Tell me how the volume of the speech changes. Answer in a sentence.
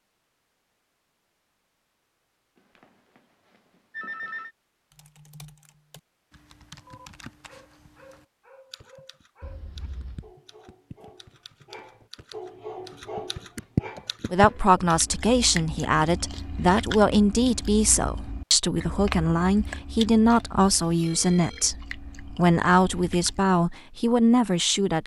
The loudness of the speech stays about the same.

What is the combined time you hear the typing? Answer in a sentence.
The typing can be heard for 10 seconds in total.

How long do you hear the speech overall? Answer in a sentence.
You can hear the speech for 11 seconds altogether.